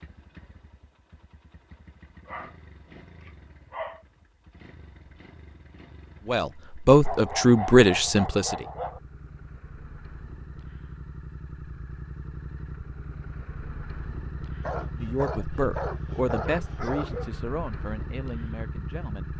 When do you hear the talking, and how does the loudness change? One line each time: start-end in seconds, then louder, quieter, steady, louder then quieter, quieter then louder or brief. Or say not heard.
6.2-8.7 brief
15.0-19.3 quieter.